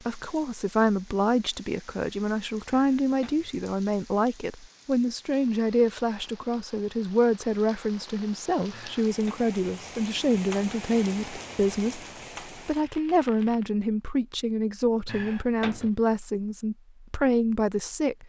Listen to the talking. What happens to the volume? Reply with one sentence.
The loudness of the talking stays about the same.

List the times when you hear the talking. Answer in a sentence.
The talking can be heard from 0.1 to 12.0 s and from 12.7 to 18.2 s.